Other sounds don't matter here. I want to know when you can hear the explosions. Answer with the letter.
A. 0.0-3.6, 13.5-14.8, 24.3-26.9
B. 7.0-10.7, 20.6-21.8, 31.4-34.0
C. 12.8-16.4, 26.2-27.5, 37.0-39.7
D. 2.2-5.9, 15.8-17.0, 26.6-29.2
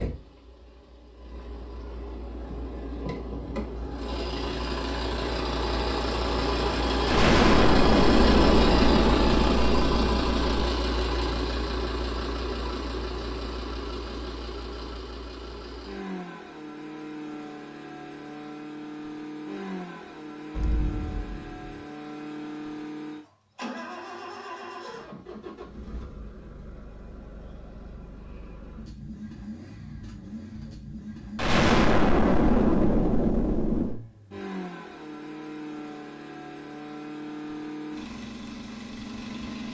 B.